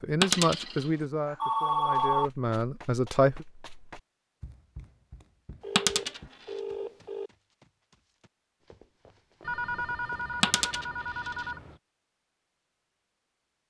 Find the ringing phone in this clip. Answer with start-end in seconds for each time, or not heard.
0.3-2.3, 5.6-7.3, 9.4-11.8.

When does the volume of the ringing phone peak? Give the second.
2 s.